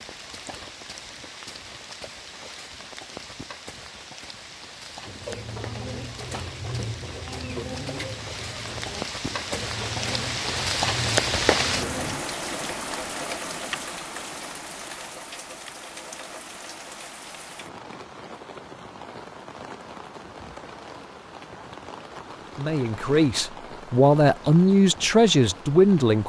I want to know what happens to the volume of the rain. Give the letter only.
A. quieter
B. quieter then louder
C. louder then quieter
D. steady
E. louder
C.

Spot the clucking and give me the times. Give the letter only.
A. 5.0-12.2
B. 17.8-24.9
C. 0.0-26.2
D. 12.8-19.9
A.